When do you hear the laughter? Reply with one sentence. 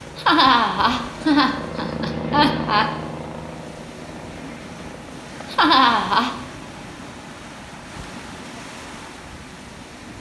You can hear the laughter from 0.1 to 2.9 s and from 5.5 to 6.3 s.